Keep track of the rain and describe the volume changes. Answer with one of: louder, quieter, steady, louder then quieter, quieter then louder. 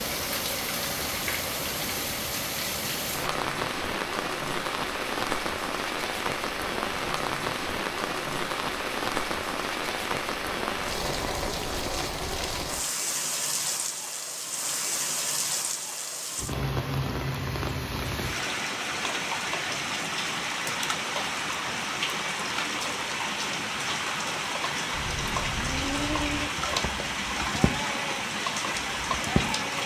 steady.